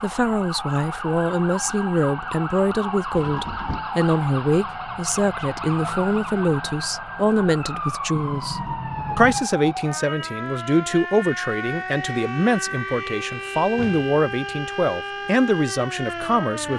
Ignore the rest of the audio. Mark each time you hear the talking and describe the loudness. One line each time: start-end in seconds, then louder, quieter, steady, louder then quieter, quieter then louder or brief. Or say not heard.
0.0-16.7 steady.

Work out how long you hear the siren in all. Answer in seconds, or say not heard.
17 s.